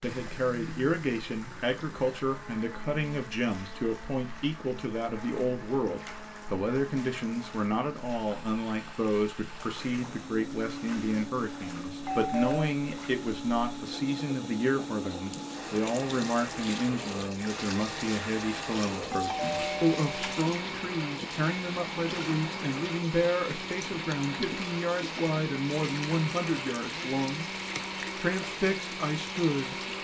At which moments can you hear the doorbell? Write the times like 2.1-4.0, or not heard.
12.0-12.7, 19.1-20.5.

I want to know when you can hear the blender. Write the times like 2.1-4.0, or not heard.
0.0-29.9.